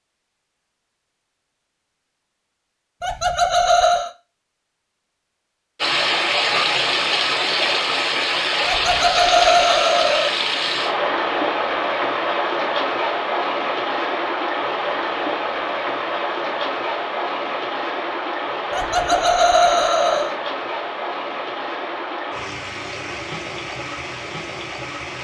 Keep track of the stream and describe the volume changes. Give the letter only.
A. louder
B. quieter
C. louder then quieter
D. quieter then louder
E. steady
B.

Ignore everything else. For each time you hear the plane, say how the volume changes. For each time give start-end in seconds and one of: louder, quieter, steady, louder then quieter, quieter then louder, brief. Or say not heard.
not heard.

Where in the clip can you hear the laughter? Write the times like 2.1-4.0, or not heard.
3.0-4.1, 8.7-10.3, 18.7-20.4.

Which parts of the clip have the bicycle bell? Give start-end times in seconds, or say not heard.
not heard.